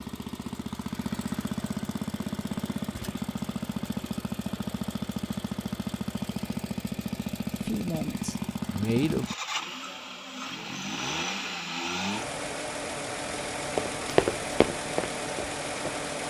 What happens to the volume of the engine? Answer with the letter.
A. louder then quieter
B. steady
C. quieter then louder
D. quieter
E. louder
B.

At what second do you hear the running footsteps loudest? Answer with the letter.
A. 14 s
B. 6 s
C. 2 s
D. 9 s
A.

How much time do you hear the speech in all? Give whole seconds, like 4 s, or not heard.
2 s.